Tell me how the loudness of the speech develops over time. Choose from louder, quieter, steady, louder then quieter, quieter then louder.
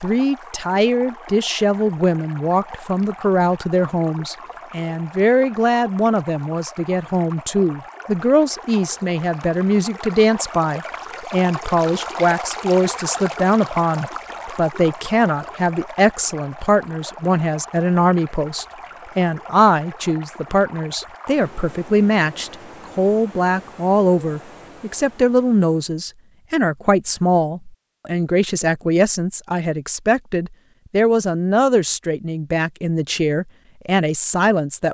steady.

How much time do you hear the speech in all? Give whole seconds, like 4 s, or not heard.
35 s.